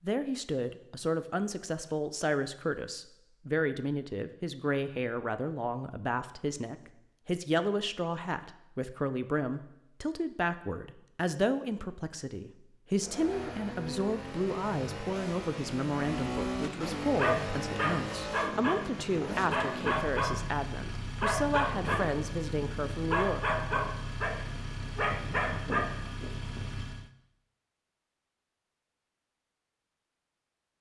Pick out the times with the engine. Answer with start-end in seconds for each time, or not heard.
12.9-27.1.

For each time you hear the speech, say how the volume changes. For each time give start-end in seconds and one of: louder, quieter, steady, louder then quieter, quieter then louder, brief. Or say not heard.
0.0-23.6 steady.